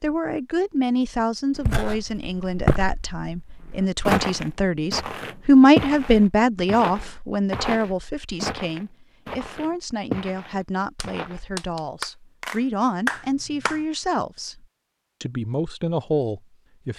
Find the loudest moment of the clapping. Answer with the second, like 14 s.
13 s.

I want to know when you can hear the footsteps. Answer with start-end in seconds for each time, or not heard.
1.6-11.4.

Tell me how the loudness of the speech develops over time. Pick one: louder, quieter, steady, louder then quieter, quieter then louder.
louder then quieter.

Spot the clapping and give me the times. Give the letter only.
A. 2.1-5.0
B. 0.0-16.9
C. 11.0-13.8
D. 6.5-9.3
C.